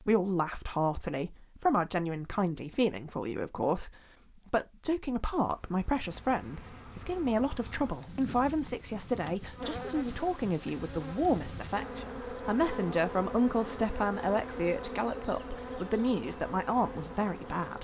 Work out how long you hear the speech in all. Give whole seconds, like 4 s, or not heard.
17 s.